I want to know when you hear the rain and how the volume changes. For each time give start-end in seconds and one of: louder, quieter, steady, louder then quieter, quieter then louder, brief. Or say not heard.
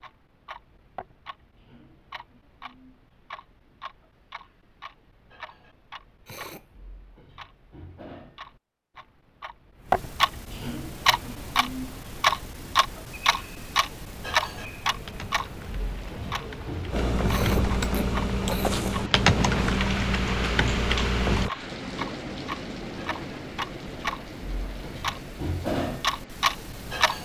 11.0-27.2 louder then quieter.